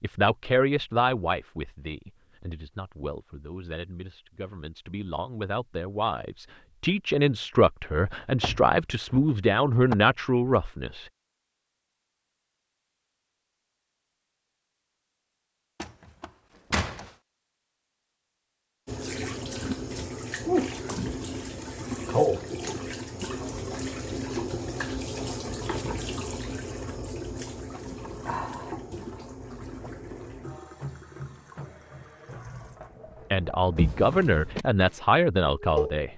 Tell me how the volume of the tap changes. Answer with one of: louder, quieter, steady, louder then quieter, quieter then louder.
quieter.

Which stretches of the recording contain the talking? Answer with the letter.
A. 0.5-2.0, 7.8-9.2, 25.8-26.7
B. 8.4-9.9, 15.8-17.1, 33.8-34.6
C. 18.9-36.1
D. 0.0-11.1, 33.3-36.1
D.